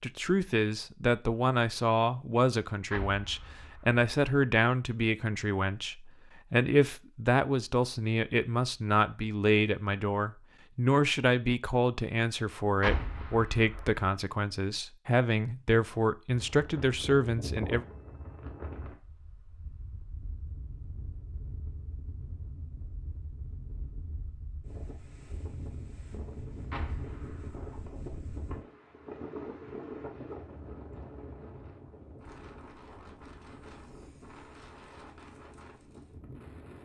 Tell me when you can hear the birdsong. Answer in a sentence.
You can't hear the birdsong here.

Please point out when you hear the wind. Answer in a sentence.
You can hear the wind from 16.3 to 36.7 s.